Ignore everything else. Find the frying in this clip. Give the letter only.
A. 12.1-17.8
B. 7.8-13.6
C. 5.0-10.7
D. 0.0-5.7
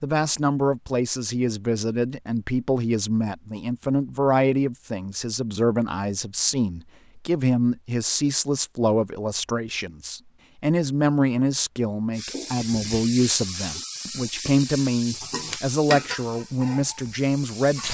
A.